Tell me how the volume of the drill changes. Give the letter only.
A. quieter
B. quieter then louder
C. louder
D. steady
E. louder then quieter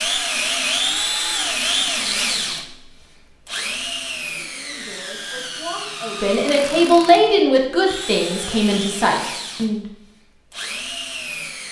A.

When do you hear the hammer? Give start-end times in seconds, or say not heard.
not heard.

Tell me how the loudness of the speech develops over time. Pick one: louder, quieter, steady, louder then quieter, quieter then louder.
louder then quieter.